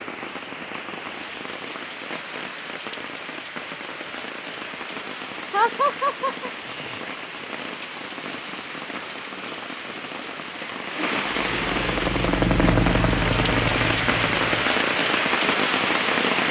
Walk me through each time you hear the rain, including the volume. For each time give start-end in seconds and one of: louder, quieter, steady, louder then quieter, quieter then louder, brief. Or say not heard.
0.0-16.4 louder.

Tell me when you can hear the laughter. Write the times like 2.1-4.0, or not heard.
5.5-6.5.